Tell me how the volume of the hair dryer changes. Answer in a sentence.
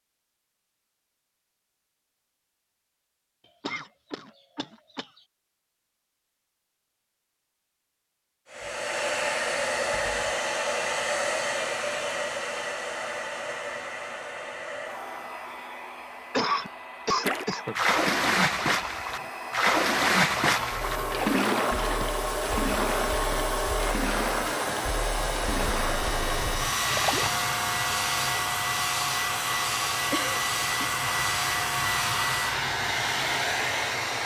The loudness of the hair dryer goes down, then up.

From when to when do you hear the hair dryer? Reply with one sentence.
You can hear the hair dryer from 8.5 to 34.2 s.